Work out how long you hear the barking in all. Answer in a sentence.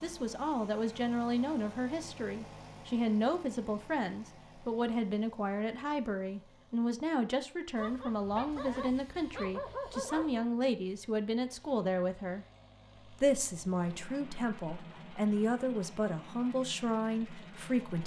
You can hear the barking for 3 seconds altogether.